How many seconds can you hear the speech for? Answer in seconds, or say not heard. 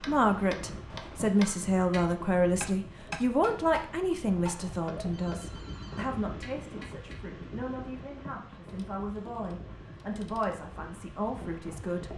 12 s.